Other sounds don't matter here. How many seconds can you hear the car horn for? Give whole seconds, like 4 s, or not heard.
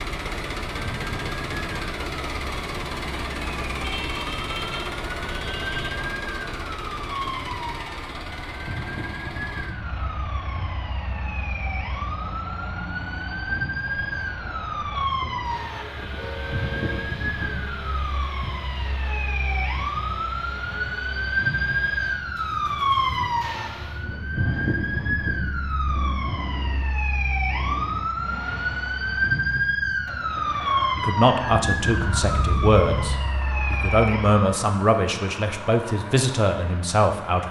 5 s.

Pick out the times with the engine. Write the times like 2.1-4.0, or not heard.
0.0-37.4.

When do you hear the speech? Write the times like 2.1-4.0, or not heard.
30.9-37.4.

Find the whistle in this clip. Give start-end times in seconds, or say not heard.
not heard.